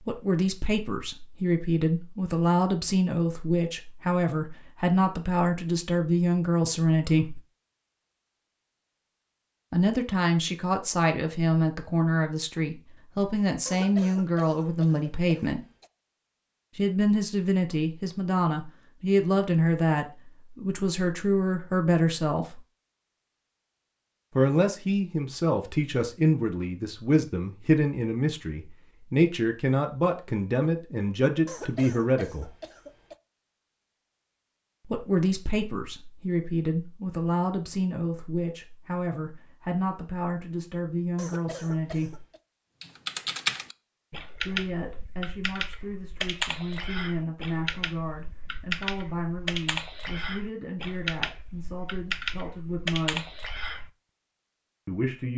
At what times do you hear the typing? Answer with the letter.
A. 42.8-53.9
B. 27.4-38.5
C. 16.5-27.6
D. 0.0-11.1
A.